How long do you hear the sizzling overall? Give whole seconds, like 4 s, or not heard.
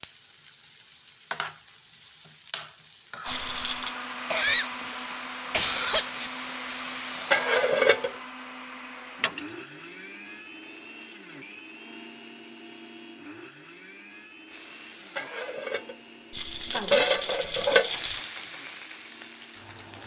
14 s.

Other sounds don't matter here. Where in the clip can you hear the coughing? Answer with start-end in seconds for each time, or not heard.
4.3-6.3.